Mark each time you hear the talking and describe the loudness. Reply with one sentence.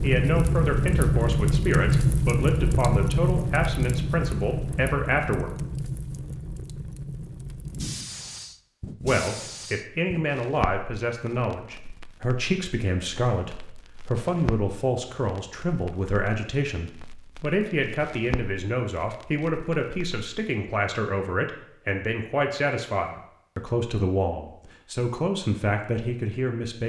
You can hear the talking from 0.0 to 5.5 s, at a steady volume; and from 9.0 to 26.8 s, at a steady volume.